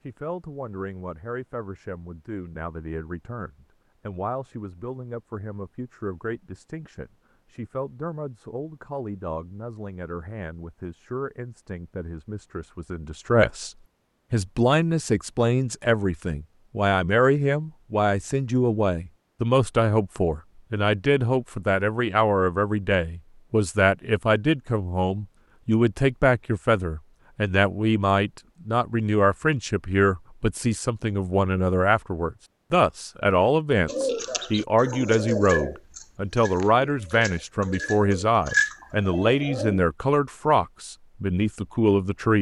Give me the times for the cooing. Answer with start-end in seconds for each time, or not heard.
33.9-39.8.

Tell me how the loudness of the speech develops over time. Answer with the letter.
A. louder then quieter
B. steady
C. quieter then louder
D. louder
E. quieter
D.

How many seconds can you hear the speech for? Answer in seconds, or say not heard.
42 s.